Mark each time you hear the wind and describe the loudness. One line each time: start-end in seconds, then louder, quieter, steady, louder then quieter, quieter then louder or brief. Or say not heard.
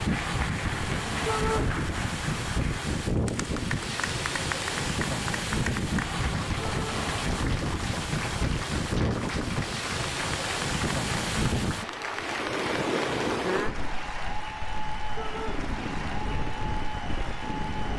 0.0-17.9 quieter.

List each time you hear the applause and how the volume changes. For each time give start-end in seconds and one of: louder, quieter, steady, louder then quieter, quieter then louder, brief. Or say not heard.
0.0-17.9 steady.